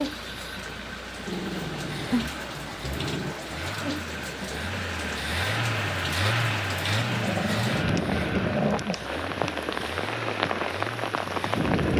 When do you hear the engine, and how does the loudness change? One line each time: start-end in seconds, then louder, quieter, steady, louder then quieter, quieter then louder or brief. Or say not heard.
0.0-11.7 louder then quieter.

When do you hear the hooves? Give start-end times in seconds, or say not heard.
not heard.